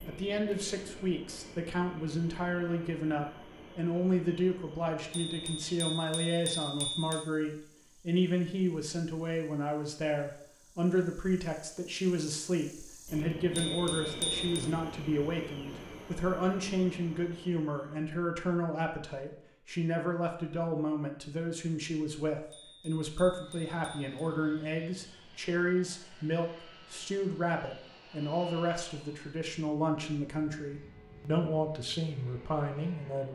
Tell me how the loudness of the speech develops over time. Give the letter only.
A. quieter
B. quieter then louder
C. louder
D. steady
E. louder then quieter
D.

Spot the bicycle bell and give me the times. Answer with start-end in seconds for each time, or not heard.
5.1-7.2, 13.5-14.7, 22.5-24.1.